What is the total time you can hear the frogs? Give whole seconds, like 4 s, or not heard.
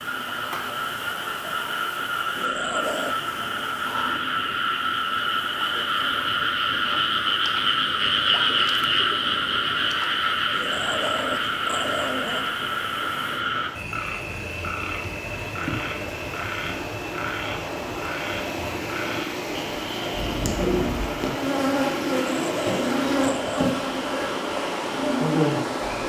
26 s.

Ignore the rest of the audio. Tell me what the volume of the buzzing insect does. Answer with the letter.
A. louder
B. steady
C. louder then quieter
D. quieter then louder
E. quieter
A.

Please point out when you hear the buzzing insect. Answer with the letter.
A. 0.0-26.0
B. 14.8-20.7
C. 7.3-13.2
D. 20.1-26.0
D.